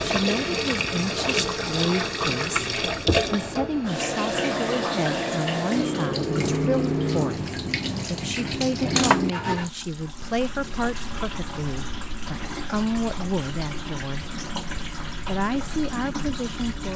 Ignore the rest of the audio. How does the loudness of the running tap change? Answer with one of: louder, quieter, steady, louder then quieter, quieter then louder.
quieter.